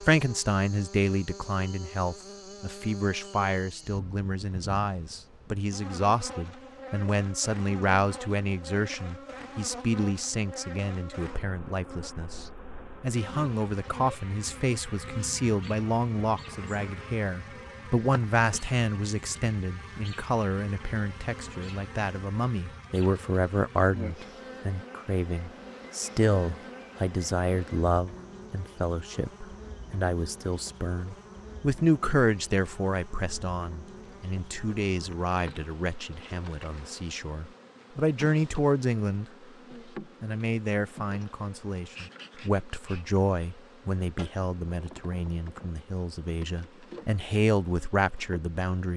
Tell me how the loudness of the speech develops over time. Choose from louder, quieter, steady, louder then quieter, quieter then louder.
steady.